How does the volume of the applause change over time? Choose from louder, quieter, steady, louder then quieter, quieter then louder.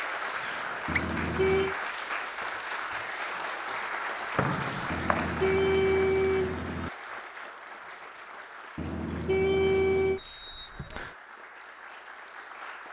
quieter.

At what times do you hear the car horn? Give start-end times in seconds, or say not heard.
0.8-1.8, 4.9-6.9, 8.8-10.2.